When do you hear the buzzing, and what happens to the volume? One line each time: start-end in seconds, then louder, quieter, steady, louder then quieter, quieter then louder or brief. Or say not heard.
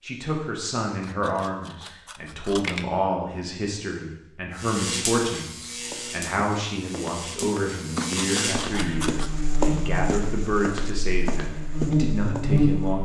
4.5-13.0 quieter then louder.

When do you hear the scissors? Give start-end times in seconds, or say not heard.
1.0-2.9, 8.0-9.4.